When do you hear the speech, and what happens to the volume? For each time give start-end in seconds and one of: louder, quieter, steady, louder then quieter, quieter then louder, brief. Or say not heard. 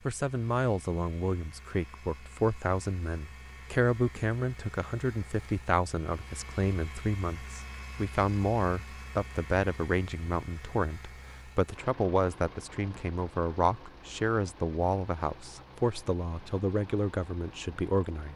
0.1-18.3 steady.